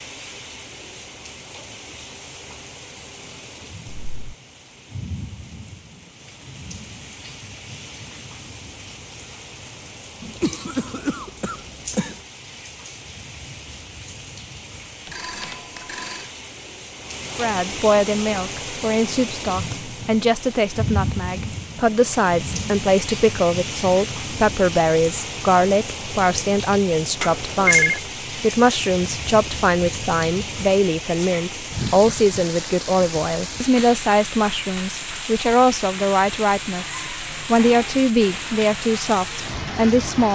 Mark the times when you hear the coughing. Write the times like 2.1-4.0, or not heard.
10.2-12.2.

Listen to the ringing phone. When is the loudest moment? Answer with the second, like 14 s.
28 s.